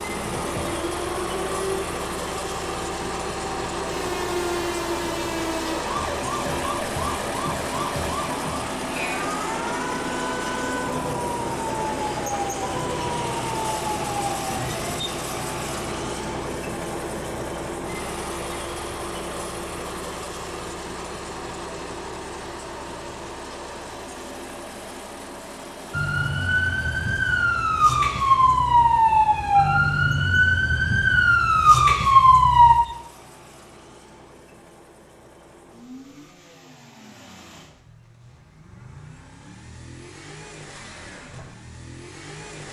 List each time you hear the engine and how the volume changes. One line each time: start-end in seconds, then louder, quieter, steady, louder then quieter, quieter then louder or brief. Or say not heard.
0.0-42.6 quieter.